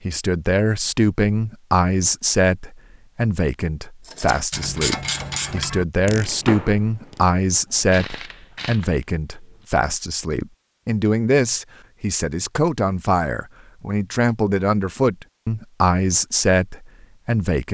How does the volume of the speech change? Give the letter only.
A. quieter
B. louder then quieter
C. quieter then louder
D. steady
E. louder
D.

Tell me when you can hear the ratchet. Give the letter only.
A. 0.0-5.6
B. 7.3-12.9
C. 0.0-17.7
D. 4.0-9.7
D.